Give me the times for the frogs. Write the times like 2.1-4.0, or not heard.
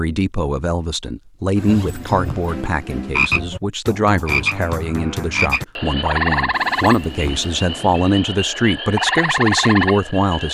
1.6-10.4.